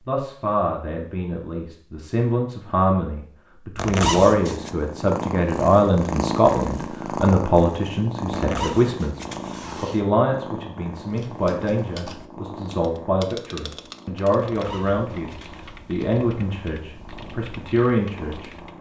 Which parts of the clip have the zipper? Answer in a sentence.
You can hear the zipper from 3.8 to 4.7 s, from 8.3 to 10.0 s and from 14.4 to 15.8 s.